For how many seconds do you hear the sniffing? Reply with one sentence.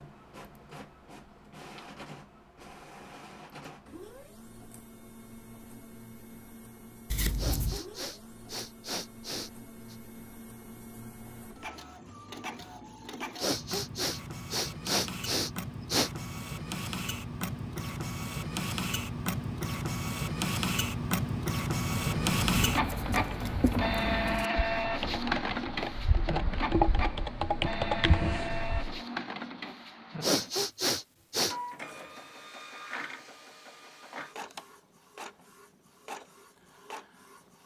The sniffing can be heard for 7 seconds in total.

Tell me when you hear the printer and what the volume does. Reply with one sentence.
You can hear the printer from 0.0 to 37.6 s, getting louder then quieter.